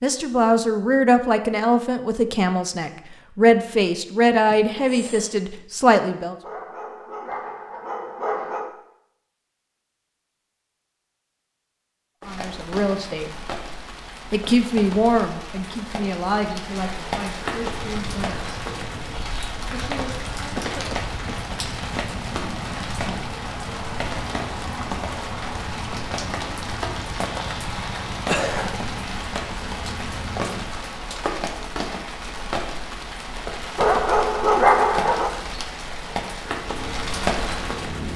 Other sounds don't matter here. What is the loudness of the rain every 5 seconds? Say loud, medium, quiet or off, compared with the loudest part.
off, off, medium, loud, loud, loud, loud, loud.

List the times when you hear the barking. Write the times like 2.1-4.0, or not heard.
6.4-8.7, 33.8-35.4.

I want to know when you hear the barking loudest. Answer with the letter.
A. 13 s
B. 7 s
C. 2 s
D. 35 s
D.